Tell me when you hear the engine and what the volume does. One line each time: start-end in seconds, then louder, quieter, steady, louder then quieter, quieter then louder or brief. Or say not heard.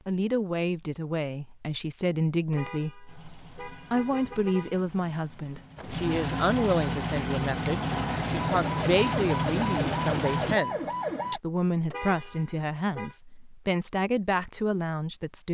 3.0-10.6 louder.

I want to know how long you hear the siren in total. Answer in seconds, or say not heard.
3 s.